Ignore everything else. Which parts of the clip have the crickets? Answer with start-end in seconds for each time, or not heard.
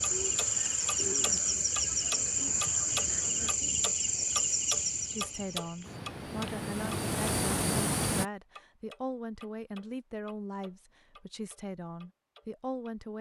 0.0-8.2.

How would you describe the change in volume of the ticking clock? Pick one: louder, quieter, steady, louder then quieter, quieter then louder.
quieter.